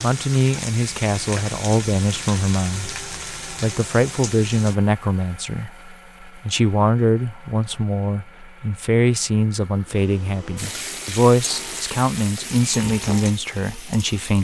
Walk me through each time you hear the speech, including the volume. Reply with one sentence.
The speech can be heard from 0.0 to 14.3 s, at a steady volume.